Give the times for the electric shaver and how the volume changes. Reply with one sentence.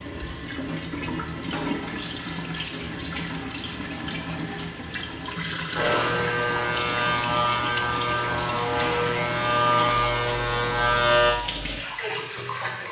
The electric shaver can be heard from 5.8 to 11.3 s, at a steady volume.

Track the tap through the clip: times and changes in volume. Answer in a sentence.
The tap can be heard from 0.0 to 12.8 s, at a steady volume.